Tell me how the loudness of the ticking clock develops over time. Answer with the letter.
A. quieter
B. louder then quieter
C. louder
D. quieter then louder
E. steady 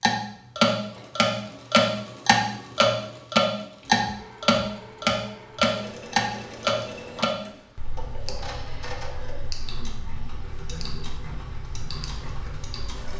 A.